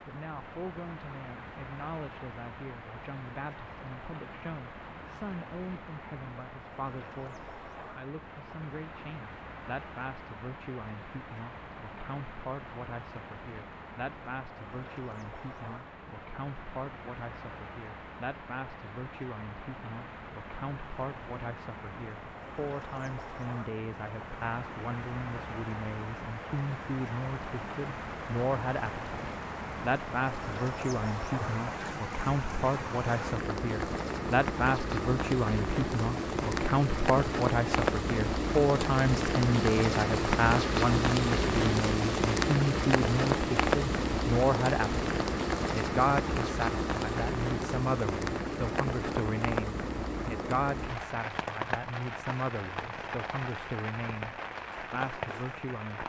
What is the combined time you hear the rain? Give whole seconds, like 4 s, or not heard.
56 s.